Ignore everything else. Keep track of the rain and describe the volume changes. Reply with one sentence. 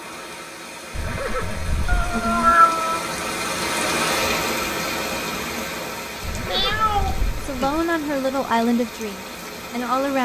The loudness of the rain goes up, then down.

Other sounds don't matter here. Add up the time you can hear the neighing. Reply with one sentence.
The neighing can be heard for 3 seconds in total.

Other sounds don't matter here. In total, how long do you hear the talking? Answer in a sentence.
You can hear the talking for 3 seconds altogether.